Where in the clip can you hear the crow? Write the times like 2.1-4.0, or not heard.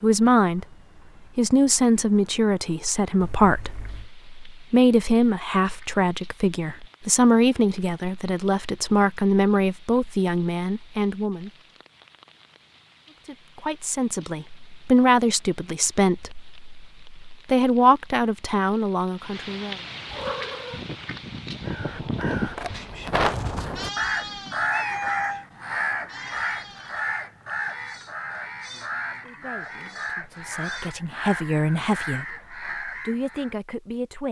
21.6-33.5.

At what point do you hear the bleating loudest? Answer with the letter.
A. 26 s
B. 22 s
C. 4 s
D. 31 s
B.